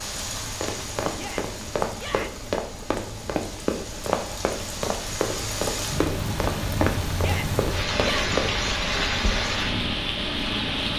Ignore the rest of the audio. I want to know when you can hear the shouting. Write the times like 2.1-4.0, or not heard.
1.1-2.5, 7.2-8.3.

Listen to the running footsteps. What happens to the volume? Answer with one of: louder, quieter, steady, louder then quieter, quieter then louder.
steady.